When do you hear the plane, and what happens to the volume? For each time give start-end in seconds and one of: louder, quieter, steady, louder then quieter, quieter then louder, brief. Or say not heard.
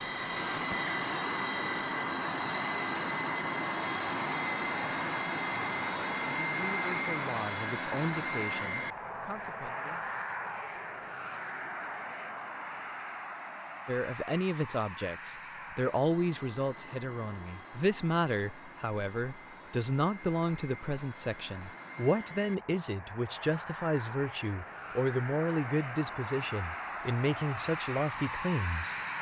0.0-29.1 quieter then louder.